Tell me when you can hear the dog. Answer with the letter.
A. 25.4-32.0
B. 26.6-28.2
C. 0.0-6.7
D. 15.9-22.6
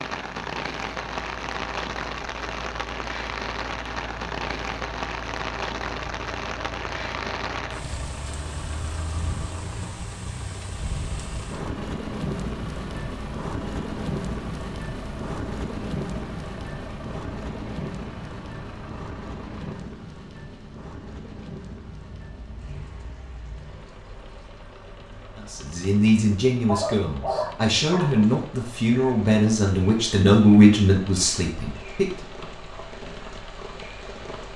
B.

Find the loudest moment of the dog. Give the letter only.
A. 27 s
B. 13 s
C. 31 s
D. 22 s
A.